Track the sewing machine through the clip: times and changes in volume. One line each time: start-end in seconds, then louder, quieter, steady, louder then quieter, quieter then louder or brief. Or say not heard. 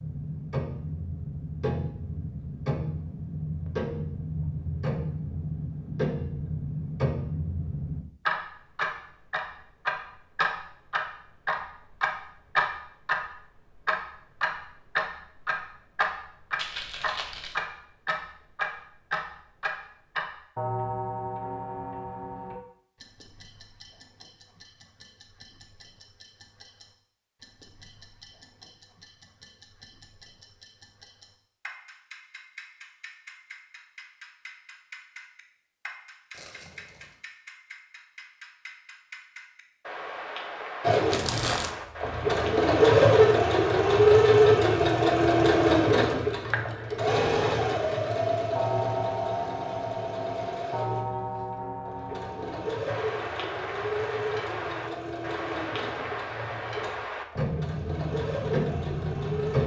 40.8-59.6 quieter.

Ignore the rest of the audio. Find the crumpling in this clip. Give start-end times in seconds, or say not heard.
16.6-17.6, 36.3-37.1, 41.1-41.8.